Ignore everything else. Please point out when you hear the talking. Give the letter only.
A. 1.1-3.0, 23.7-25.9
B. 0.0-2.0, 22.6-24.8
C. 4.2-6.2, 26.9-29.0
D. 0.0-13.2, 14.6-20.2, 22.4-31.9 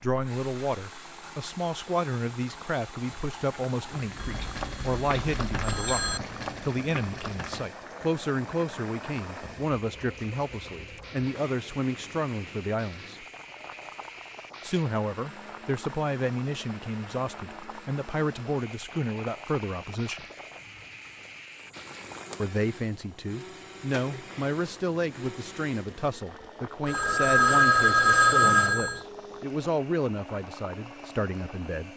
D.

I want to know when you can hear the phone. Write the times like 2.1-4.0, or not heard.
4.2-6.2, 26.9-29.0.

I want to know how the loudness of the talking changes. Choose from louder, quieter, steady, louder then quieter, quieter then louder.
steady.